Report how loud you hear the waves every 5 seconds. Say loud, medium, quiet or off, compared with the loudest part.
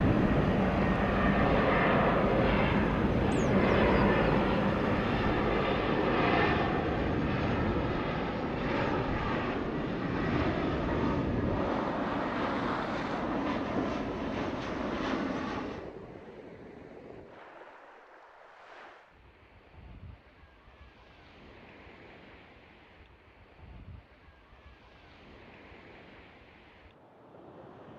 loud, loud, loud, quiet, quiet, quiet.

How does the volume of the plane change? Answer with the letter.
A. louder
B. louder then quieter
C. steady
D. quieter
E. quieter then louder
D.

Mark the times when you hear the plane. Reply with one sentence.
You can hear the plane from 0.0 to 15.9 s.